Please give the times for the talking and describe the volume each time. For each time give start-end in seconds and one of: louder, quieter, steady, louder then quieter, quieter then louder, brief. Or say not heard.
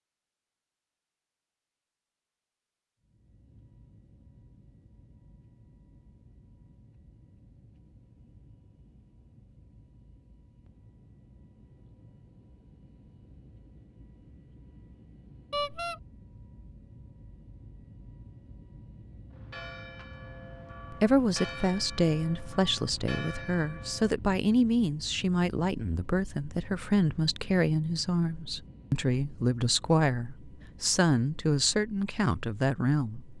20.9-33.3 steady.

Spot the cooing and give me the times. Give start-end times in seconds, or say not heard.
not heard.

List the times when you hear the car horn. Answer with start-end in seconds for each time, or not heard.
15.5-16.0.